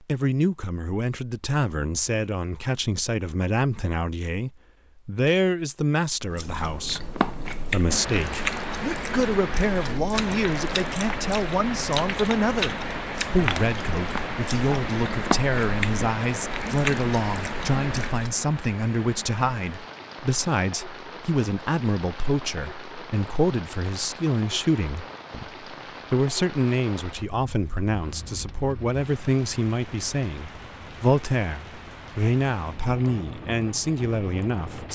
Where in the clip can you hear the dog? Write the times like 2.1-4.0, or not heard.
not heard.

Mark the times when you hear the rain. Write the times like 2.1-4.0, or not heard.
7.8-34.9.